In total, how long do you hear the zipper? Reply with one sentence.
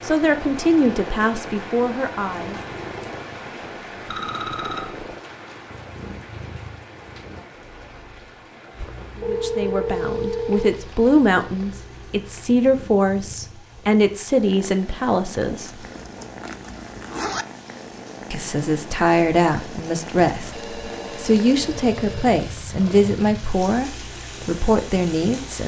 You can hear the zipper for 2 seconds altogether.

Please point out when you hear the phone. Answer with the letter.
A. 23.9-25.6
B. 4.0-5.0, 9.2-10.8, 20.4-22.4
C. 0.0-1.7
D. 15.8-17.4
B.